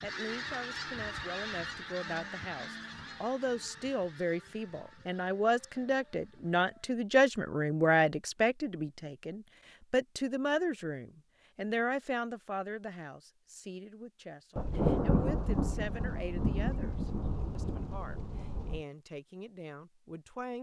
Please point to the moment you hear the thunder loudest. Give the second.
15 s.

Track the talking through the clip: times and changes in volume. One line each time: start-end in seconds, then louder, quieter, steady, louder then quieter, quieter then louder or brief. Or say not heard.
0.0-20.5 louder then quieter.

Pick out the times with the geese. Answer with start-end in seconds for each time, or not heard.
0.0-7.0.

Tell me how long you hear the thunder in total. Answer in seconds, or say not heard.
4 s.